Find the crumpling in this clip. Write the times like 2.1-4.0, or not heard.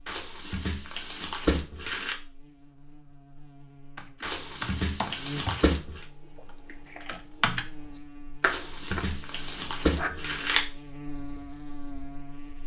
0.1-2.1, 4.2-6.0, 8.4-10.7.